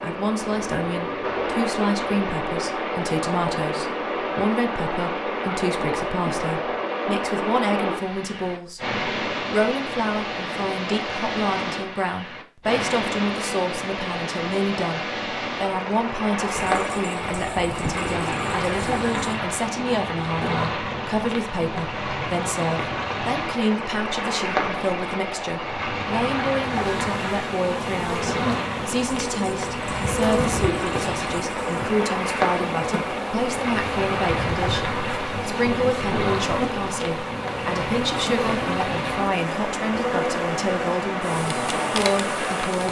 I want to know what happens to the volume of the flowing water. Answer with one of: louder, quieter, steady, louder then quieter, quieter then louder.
steady.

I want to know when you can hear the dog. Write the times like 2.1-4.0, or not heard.
not heard.